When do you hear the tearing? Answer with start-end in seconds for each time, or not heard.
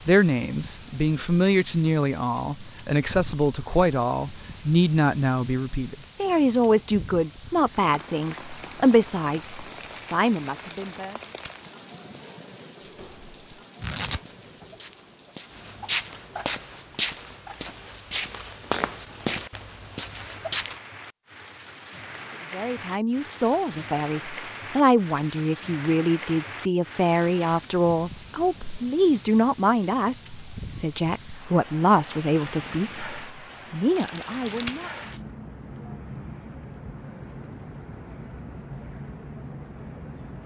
10.7-11.6, 13.8-14.7, 34.0-35.2.